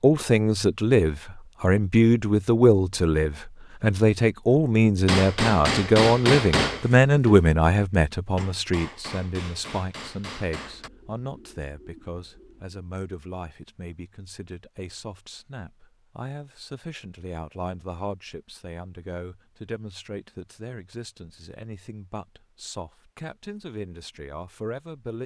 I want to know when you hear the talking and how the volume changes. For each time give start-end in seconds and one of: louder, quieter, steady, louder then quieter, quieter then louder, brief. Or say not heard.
0.0-25.2 quieter.